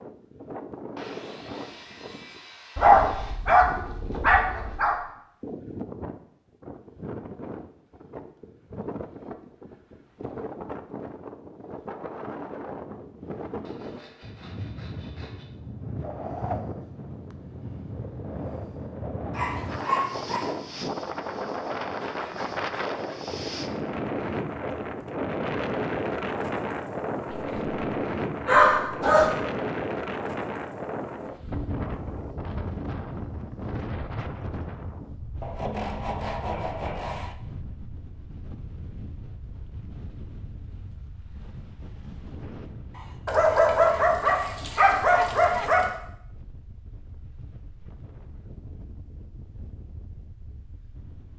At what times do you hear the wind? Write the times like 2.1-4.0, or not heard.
0.0-51.3.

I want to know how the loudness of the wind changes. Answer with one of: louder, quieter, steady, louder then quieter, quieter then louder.
louder then quieter.